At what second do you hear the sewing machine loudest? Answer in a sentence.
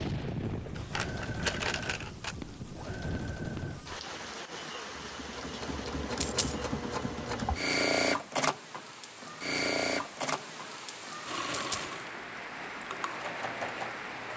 The volume of the sewing machine peaks at 8 seconds.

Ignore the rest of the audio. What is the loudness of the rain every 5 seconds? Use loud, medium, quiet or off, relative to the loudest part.
loud, medium, loud.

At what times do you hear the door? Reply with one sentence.
You can't hear the door here.